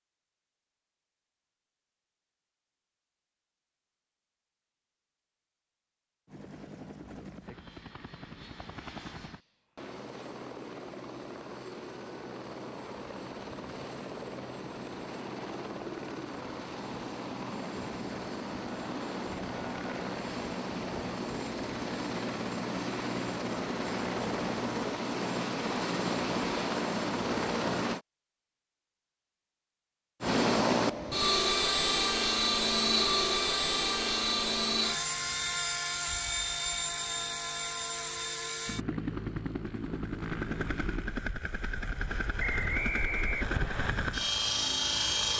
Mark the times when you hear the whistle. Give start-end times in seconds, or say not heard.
42.4-43.9.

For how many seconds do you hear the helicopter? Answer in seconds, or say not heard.
37 s.